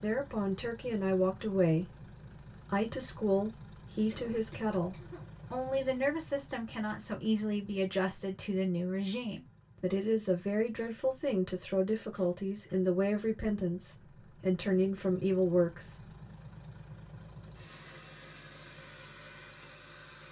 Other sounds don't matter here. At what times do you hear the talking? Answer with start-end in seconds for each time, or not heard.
0.0-16.1.